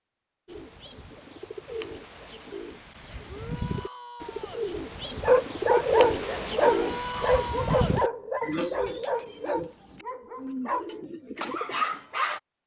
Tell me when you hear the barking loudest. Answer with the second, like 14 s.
6 s.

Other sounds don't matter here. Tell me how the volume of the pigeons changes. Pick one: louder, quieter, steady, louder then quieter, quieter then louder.
louder then quieter.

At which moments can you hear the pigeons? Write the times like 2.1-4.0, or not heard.
0.5-11.9.